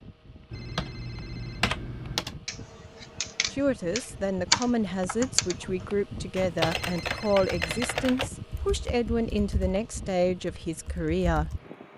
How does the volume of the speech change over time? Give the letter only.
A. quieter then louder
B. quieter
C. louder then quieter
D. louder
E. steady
E.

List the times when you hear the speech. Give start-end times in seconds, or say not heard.
3.5-11.6.